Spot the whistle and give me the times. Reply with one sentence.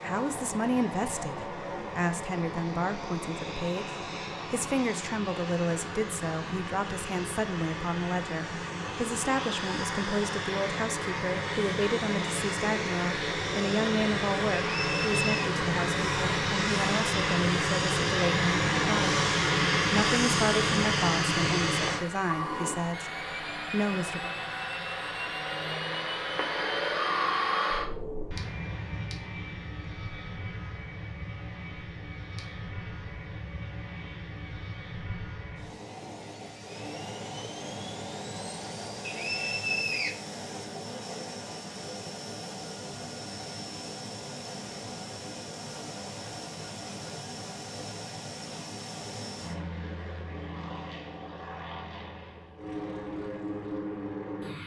The whistle can be heard from 14.7 to 15.5 s and from 39.0 to 40.1 s.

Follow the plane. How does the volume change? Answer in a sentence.
The loudness of the plane goes up, then down.